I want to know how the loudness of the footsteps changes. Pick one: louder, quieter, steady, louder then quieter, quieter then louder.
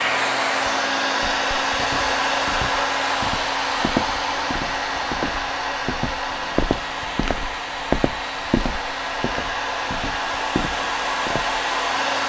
louder then quieter.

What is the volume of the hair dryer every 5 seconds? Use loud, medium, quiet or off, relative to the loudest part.
loud, medium, loud.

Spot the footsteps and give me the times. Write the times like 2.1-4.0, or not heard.
1.2-11.6.